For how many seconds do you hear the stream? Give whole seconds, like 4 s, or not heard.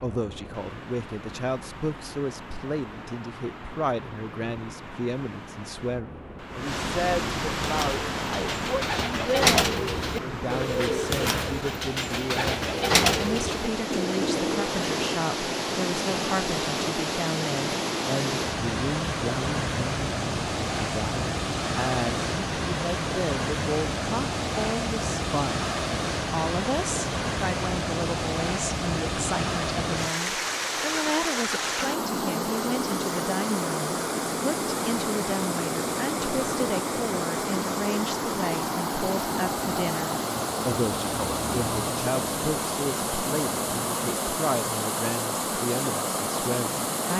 47 s.